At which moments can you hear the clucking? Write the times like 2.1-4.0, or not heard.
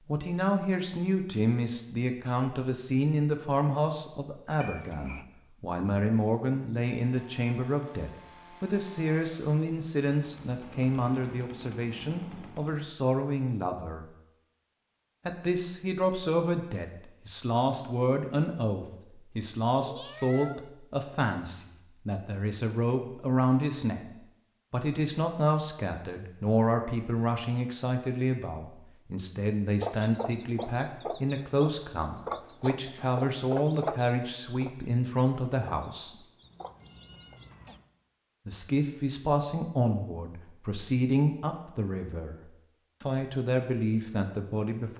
29.8-37.8.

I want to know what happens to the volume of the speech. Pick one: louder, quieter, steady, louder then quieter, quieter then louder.
steady.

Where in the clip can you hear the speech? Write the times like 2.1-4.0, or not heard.
0.1-14.1, 15.2-24.0, 24.7-36.1, 38.5-44.9.